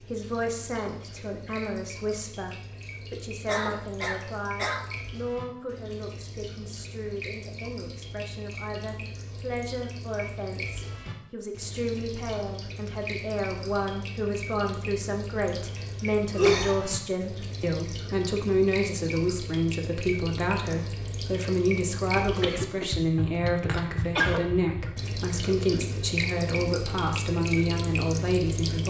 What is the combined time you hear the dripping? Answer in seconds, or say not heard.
29 s.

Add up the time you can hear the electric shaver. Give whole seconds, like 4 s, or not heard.
not heard.